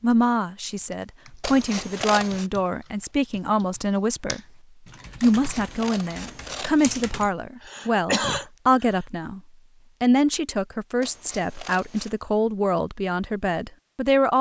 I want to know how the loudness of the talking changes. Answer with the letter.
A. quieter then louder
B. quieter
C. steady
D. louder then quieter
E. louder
C.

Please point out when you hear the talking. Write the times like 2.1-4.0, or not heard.
0.0-4.4, 5.2-9.4, 10.0-14.3.